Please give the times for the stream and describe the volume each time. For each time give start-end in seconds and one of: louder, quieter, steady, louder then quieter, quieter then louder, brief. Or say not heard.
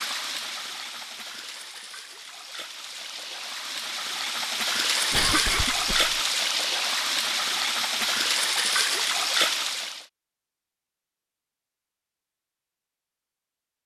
0.0-10.1 louder.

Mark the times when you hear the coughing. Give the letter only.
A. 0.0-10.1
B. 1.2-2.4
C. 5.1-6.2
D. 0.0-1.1
C.